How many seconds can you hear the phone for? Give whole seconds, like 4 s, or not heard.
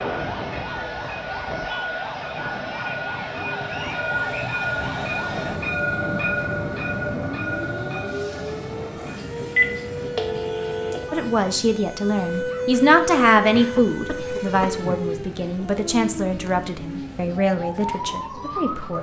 2 s.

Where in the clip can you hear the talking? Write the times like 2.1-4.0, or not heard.
11.1-18.9.